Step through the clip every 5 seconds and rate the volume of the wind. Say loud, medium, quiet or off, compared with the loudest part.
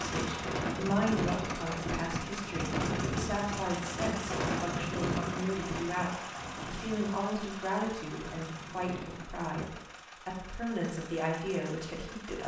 loud, medium, off.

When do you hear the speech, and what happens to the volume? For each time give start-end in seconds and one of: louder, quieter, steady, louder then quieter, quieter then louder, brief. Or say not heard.
0.0-12.4 steady.